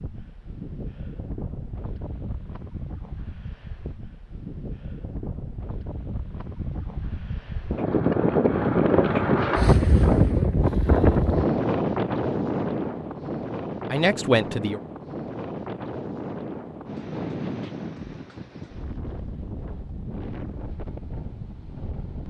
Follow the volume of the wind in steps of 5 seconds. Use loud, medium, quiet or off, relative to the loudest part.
quiet, loud, loud, medium, quiet.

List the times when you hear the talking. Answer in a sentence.
You can hear the talking from 13.9 to 14.8 s.